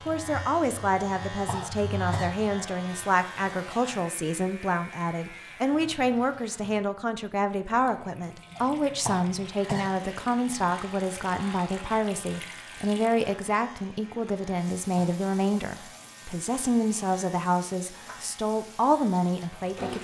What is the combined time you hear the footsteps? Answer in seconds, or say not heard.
not heard.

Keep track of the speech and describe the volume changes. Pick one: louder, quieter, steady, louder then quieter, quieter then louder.
steady.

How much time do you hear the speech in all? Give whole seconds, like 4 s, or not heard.
20 s.